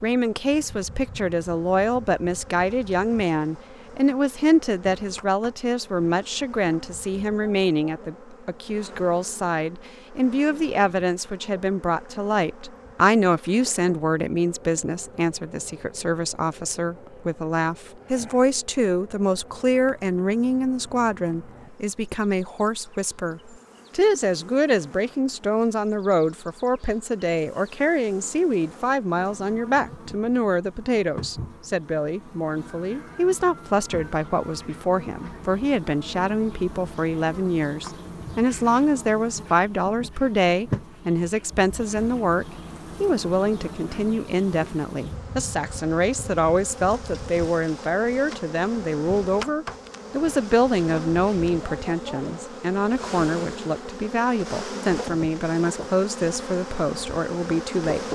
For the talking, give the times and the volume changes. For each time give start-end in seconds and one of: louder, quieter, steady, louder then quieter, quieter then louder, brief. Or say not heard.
0.0-58.0 steady.